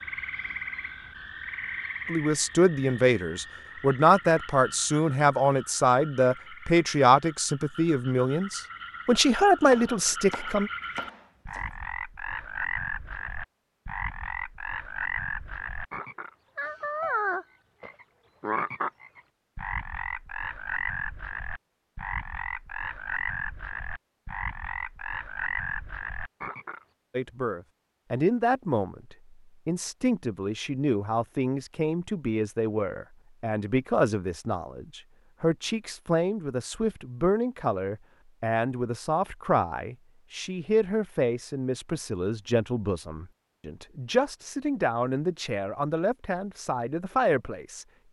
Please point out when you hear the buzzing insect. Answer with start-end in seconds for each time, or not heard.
not heard.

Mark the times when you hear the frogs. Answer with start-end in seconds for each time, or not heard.
0.0-26.8.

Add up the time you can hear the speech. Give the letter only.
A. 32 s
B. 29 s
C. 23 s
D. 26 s
B.